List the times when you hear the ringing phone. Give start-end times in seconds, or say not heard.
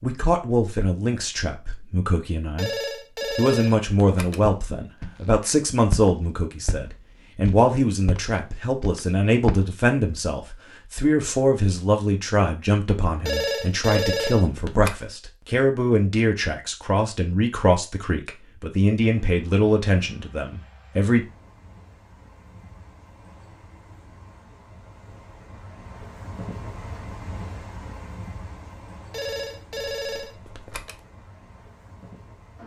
2.5-4.5, 13.2-14.9, 29.1-31.0.